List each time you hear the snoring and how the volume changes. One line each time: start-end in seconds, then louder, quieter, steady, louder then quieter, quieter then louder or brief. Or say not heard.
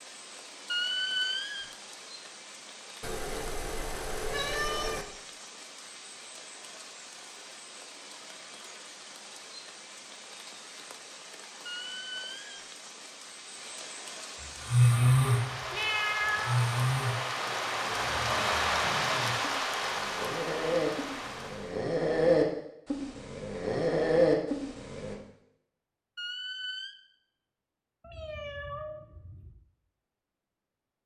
14.6-25.1 quieter then louder.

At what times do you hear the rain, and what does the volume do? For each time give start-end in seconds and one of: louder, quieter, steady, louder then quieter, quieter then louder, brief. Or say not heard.
0.0-21.9 louder.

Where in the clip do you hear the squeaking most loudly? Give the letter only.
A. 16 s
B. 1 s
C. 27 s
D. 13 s
B.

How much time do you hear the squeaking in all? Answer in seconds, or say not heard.
3 s.